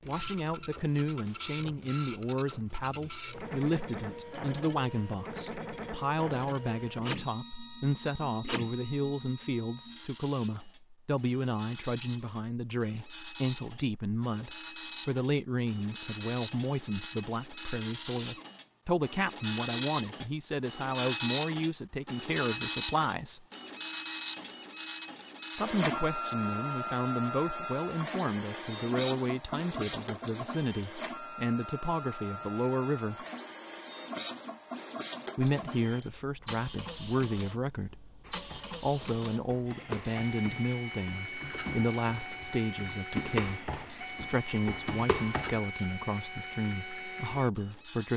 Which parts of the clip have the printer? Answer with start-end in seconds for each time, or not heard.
0.0-48.1.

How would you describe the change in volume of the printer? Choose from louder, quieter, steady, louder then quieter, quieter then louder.
louder then quieter.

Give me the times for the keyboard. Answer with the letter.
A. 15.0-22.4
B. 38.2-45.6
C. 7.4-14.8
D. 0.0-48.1
B.